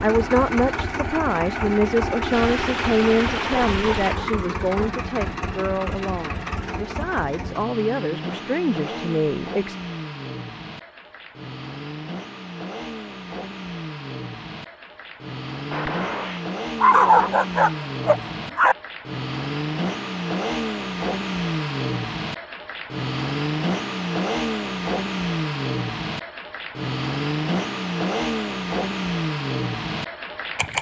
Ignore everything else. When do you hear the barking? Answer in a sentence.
You can hear the barking from 3.4 to 5.0 s and from 16.8 to 18.8 s.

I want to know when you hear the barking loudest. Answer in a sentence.
The volume of the barking peaks at 17 seconds.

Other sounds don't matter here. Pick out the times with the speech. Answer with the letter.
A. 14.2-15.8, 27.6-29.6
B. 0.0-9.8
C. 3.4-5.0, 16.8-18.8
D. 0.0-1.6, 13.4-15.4
B.